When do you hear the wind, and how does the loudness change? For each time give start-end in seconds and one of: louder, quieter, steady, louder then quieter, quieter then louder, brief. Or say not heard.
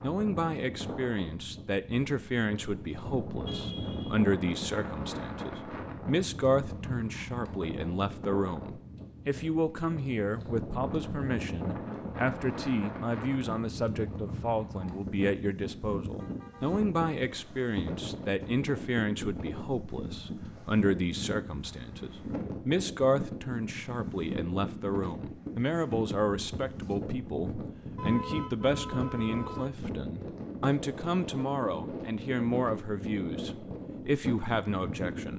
0.0-35.3 steady.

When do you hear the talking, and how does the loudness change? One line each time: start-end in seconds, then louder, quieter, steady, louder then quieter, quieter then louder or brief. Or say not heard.
0.0-35.3 steady.